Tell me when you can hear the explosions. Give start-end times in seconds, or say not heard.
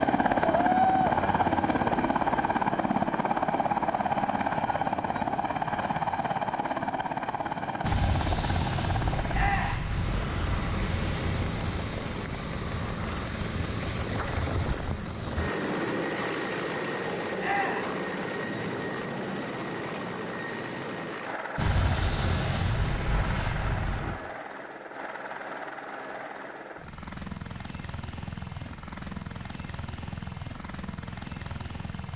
7.8-11.8, 21.6-24.1.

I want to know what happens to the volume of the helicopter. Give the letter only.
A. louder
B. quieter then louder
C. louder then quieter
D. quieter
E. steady
D.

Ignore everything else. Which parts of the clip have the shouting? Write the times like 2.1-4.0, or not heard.
9.3-9.8, 17.4-17.9.